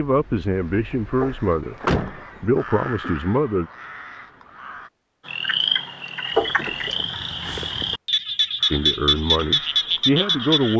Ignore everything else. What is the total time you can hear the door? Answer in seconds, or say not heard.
3 s.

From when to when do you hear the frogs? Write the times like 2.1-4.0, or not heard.
5.2-10.7.